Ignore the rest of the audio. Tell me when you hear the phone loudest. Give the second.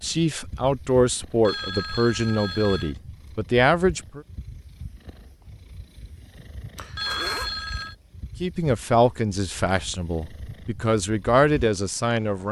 7 s.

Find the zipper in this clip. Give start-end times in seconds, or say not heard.
6.8-7.5.